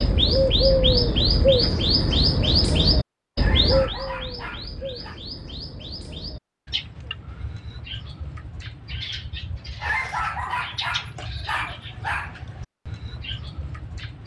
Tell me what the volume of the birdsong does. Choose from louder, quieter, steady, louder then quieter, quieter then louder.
quieter.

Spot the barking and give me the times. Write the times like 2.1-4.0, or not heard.
3.4-5.2, 9.8-12.3.